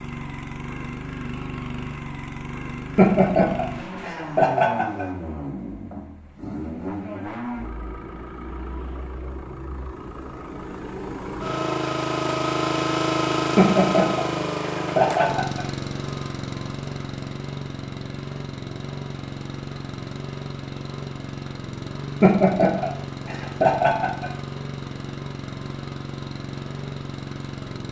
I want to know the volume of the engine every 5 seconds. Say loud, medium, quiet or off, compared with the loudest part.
medium, medium, loud, medium, medium, medium.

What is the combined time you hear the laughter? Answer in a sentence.
You can hear the laughter for 6 seconds altogether.